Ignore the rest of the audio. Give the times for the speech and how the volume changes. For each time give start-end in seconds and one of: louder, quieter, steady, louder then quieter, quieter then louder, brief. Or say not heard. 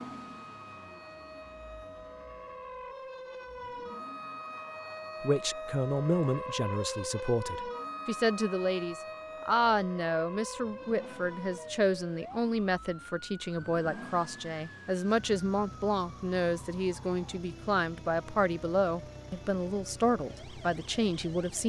5.2-21.6 steady.